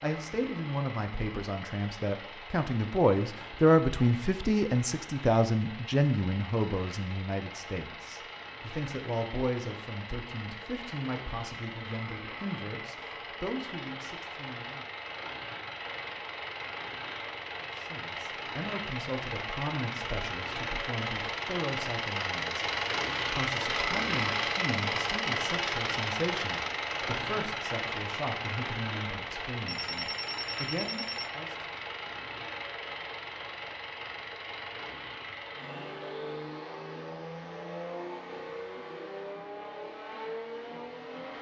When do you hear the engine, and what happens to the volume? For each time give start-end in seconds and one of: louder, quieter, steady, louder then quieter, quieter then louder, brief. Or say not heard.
0.0-41.3 louder then quieter.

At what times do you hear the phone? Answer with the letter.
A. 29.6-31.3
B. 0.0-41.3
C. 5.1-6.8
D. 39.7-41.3
A.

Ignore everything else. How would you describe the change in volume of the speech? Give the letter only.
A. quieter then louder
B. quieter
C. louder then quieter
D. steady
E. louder
B.